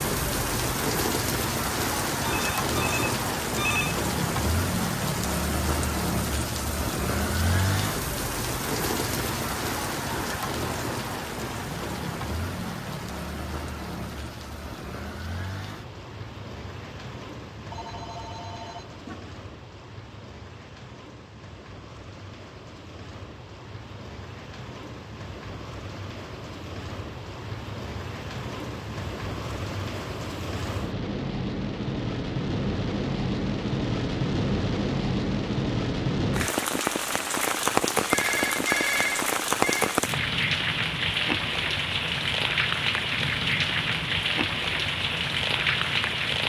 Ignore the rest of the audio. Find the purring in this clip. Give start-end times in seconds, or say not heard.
not heard.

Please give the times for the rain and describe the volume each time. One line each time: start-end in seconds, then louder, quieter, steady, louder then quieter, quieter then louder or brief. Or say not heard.
0.0-46.4 quieter then louder.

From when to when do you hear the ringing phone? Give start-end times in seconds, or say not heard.
2.2-4.0, 17.7-19.4, 38.1-39.9.